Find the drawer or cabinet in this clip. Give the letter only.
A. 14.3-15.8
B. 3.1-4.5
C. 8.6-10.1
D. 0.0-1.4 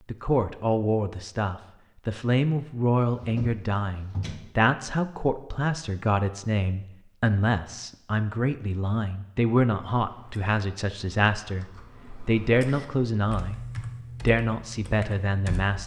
B.